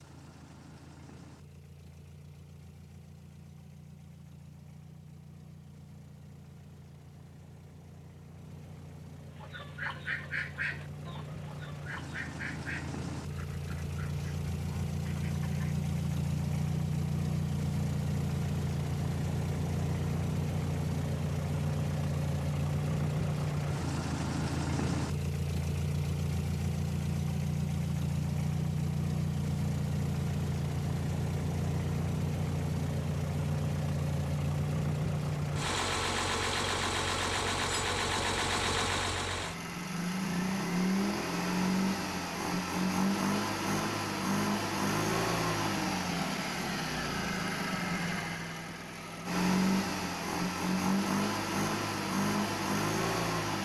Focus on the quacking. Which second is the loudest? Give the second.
11 s.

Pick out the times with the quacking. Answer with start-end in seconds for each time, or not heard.
9.4-15.8.